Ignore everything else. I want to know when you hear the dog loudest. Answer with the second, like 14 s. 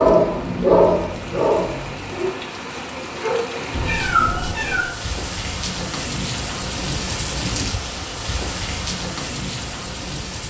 1 s.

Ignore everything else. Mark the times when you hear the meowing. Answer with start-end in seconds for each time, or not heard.
3.7-5.0.